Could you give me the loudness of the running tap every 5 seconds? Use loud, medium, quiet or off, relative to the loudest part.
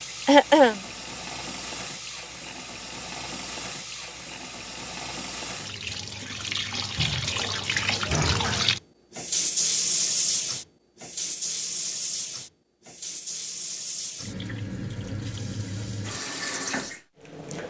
medium, loud, loud, medium.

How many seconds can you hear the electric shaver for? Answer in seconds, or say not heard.
not heard.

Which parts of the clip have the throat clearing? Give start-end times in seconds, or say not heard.
0.2-0.8.